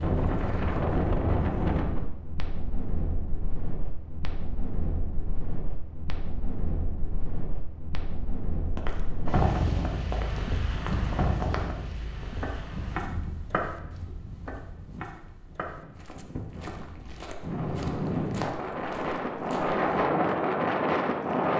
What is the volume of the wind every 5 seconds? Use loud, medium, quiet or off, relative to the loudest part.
medium, medium, medium, medium, loud.